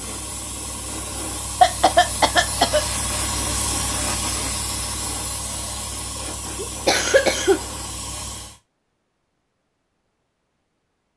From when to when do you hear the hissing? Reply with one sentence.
The hissing can be heard from 0.0 to 8.6 s.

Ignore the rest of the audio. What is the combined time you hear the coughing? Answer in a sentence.
The coughing can be heard for 2 seconds in total.